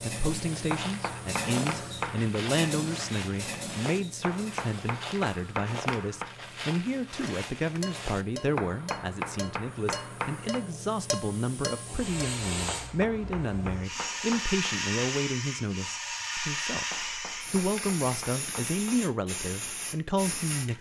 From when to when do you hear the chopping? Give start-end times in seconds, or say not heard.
0.7-2.4, 4.2-6.3, 8.6-10.7, 12.7-14.8, 16.9-19.0.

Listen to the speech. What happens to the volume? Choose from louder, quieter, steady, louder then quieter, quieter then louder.
steady.